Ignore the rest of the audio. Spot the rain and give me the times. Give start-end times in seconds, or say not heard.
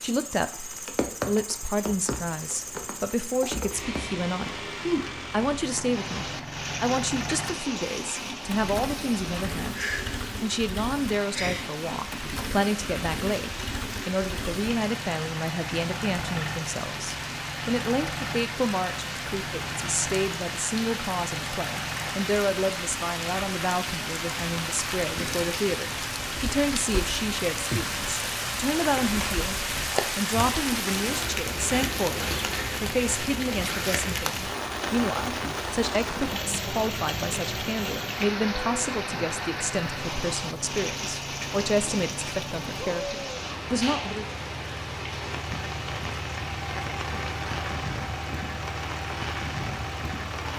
0.0-50.5.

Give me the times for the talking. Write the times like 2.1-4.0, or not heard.
0.0-4.7, 5.3-44.2.